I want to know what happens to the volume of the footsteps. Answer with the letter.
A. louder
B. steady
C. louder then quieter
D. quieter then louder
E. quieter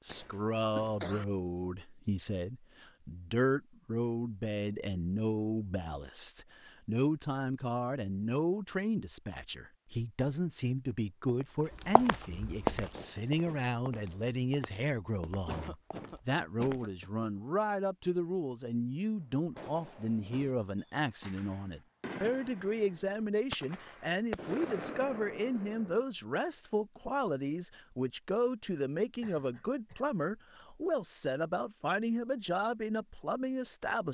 C.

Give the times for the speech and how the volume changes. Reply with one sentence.
You can hear the speech from 0.0 to 34.0 s, at a steady volume.